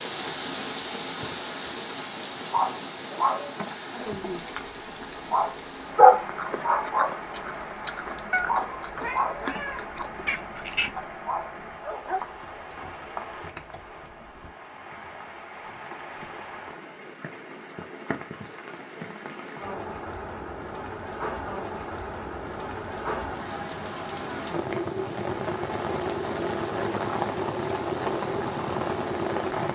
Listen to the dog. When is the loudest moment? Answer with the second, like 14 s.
6 s.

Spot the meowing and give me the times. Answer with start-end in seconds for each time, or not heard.
8.3-10.9.